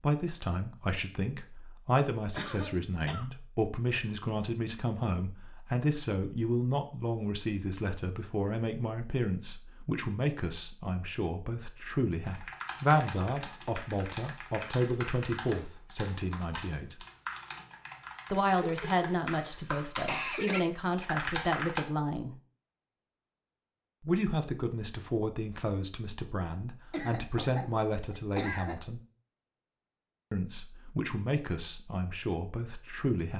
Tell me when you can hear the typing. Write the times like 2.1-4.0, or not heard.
12.2-21.8.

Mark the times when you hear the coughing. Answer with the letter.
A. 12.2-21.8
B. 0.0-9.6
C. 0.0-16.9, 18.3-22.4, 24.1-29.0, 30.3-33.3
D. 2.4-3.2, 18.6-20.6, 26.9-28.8
D.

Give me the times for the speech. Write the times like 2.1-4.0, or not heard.
0.0-16.9, 18.3-22.4, 24.1-29.0, 30.3-33.3.